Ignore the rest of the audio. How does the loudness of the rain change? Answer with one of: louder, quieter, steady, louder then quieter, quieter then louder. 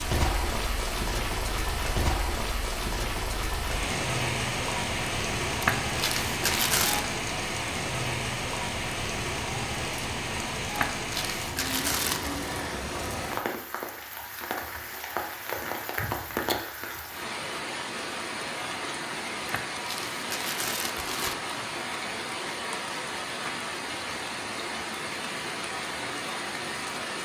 steady.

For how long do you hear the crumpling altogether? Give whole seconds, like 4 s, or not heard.
5 s.